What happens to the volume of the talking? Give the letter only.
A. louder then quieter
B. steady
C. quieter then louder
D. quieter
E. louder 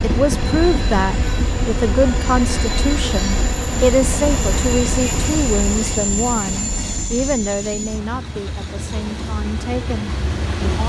D.